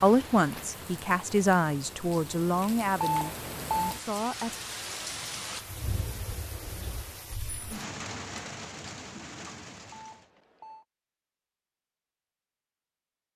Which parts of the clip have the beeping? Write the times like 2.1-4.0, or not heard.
3.0-4.0, 9.9-10.8.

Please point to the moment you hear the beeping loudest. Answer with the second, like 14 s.
3 s.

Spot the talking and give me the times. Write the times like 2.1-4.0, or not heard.
0.0-4.5.